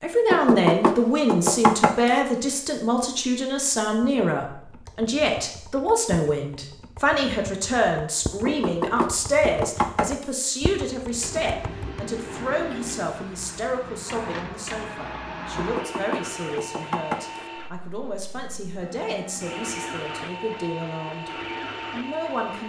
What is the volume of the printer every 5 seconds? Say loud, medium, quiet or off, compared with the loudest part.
off, off, loud, loud, loud.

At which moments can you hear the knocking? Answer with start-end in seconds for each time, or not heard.
0.3-2.1, 8.4-10.3, 15.6-17.4.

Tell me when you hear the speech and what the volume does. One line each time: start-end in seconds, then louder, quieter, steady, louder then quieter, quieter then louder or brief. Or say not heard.
0.0-21.3 quieter
21.9-22.6 brief.